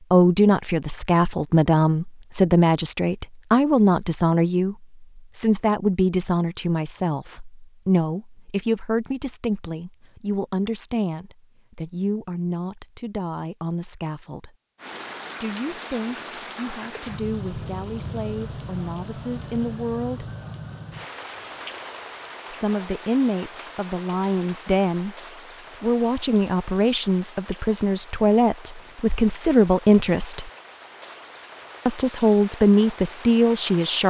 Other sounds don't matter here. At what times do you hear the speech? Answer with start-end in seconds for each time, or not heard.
0.1-14.6, 15.4-20.3, 22.5-25.1, 25.8-30.5, 31.9-34.0.